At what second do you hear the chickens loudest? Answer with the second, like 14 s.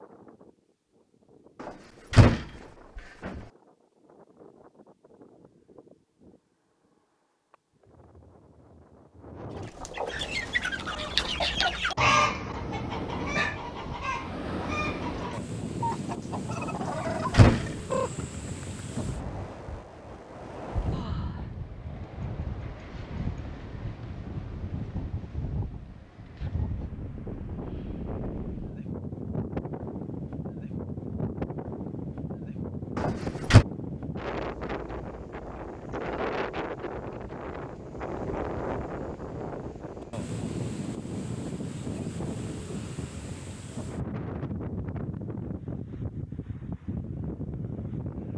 12 s.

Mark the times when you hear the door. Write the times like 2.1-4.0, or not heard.
1.6-3.4, 16.8-17.6, 33.0-33.6.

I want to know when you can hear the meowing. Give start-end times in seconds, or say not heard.
not heard.